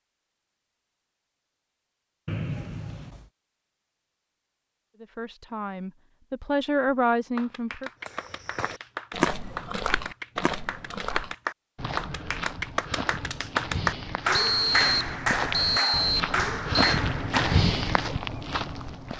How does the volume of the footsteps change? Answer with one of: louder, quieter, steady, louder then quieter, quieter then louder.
quieter then louder.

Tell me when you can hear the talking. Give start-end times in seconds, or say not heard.
5.0-7.9.